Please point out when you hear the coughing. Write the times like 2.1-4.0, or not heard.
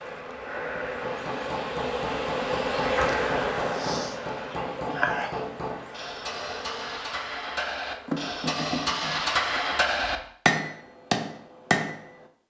not heard.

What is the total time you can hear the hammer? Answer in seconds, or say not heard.
11 s.